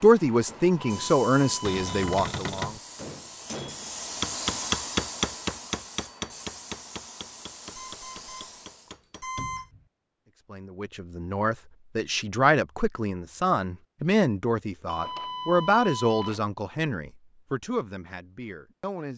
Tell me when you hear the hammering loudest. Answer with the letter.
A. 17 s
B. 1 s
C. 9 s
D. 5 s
D.